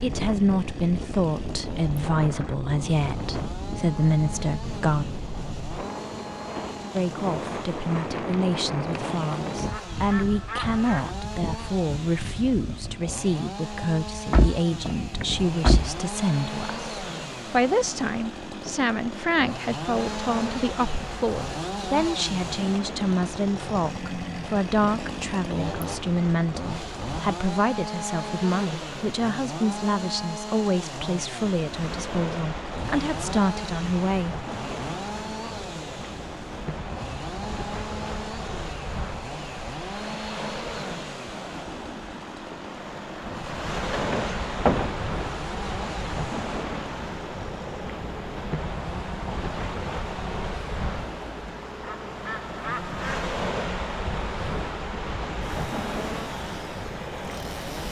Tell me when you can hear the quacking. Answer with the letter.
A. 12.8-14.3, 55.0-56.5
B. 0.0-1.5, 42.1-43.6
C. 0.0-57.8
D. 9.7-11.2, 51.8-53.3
D.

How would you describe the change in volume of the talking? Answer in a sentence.
The volume of the talking stays about the same.